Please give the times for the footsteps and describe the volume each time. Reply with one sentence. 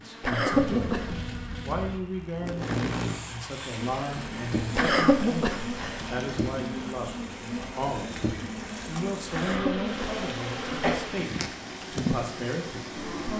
You can't hear the footsteps here.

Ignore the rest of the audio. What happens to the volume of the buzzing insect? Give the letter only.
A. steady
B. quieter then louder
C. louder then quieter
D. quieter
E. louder
A.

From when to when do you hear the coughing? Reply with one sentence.
You can hear the coughing from 0.2 to 1.1 s, from 4.8 to 6.0 s and from 9.3 to 10.9 s.